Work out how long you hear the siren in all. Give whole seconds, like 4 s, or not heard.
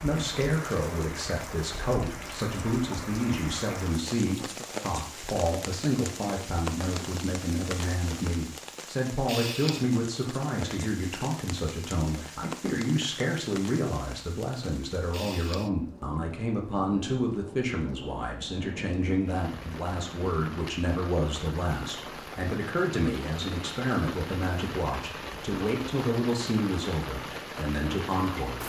not heard.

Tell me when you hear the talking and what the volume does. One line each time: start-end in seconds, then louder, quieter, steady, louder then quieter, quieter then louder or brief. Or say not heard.
0.0-28.6 steady.